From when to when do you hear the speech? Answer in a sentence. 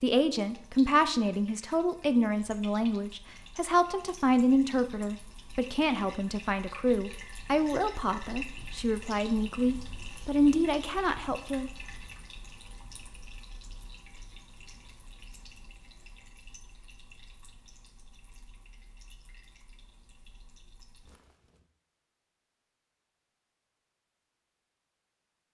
The speech can be heard from 0.0 to 11.7 s.